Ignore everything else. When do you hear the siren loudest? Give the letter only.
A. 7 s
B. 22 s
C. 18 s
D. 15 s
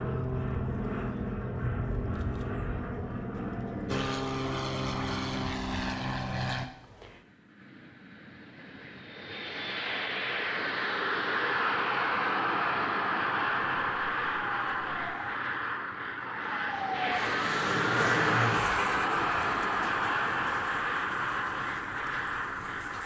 C.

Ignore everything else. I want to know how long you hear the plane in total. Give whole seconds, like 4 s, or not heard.
23 s.